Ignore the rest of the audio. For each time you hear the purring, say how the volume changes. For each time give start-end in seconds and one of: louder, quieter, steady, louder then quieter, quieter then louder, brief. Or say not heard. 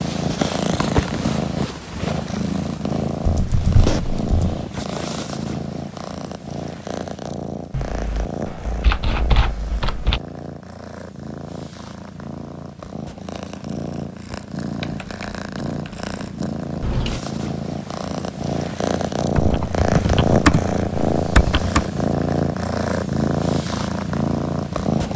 0.0-25.1 quieter then louder.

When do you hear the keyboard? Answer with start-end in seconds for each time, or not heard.
3.2-4.7, 7.7-10.2, 14.8-16.1, 19.4-21.9.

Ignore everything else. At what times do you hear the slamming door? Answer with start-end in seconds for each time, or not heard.
not heard.